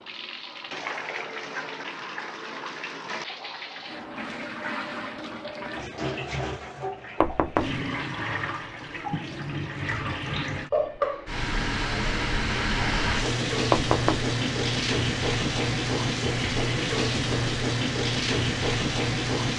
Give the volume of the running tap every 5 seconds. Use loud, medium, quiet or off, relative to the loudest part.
medium, medium, loud, loud.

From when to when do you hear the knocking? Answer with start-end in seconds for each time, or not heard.
7.2-7.8, 13.7-14.3.